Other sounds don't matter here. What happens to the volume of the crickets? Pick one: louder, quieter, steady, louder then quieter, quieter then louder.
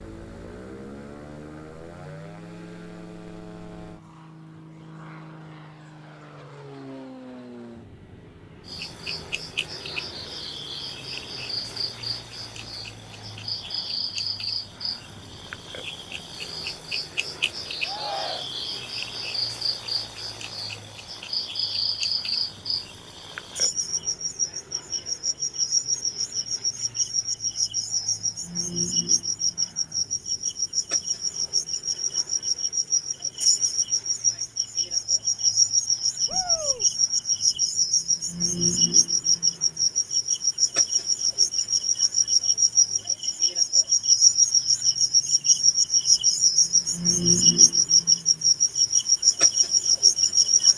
louder.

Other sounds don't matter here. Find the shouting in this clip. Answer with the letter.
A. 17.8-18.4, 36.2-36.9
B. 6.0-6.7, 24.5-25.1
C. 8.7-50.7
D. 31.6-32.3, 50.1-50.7
A.